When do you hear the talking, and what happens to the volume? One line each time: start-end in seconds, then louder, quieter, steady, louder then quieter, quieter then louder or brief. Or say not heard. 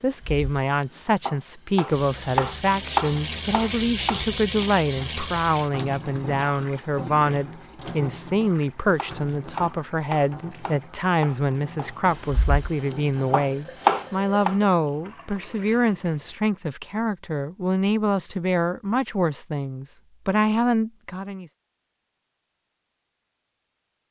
0.0-21.4 steady.